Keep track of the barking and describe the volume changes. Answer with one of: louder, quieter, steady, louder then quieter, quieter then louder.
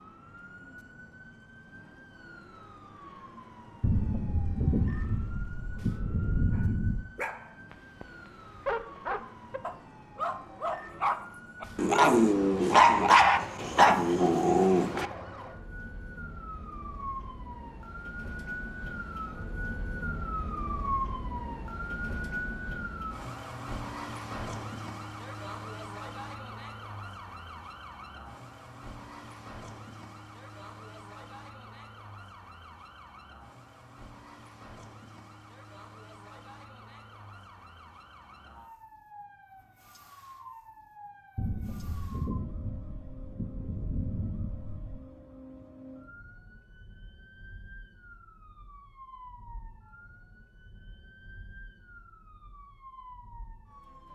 louder.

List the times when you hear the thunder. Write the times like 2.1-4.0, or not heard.
3.8-7.0, 41.4-45.0.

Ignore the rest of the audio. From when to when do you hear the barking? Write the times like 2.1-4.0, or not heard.
6.5-15.1.